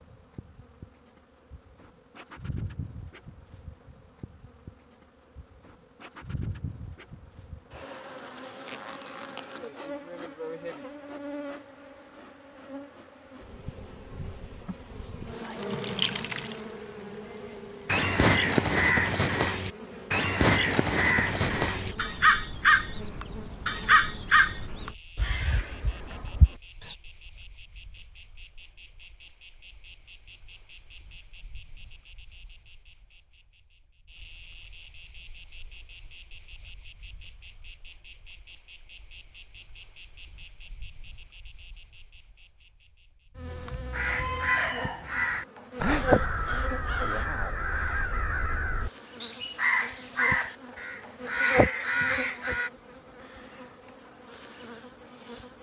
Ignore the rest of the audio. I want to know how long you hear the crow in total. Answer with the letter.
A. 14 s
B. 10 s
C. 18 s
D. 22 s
C.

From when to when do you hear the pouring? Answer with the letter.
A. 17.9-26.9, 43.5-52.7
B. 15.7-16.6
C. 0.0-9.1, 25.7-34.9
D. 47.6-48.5
B.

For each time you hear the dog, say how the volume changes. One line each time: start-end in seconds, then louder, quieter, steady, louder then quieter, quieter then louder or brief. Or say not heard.
not heard.